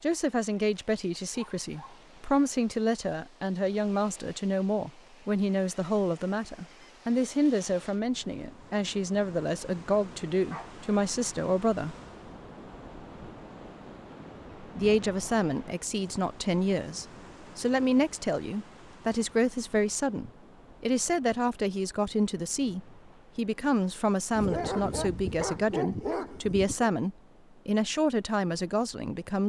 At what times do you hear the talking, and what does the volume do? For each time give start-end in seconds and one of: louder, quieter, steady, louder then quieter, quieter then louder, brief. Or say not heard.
0.0-11.9 steady
14.6-29.4 steady.